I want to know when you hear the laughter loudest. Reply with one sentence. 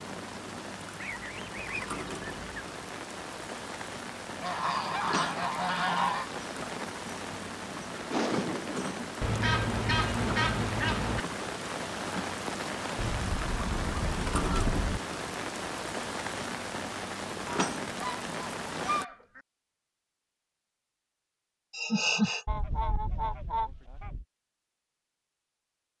The loudest moment of the laughter is at 22 seconds.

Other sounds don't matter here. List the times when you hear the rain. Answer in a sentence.
The rain can be heard from 0.0 to 19.1 s.